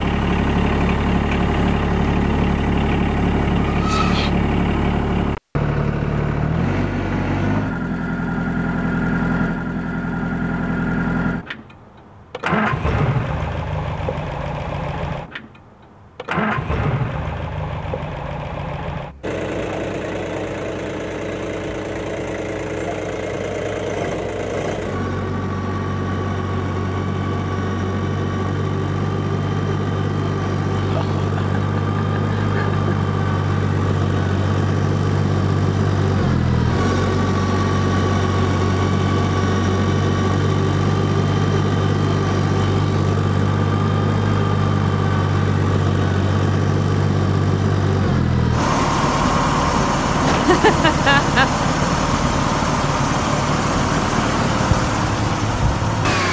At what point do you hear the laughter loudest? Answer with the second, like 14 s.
51 s.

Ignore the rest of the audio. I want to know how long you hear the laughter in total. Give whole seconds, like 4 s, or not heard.
4 s.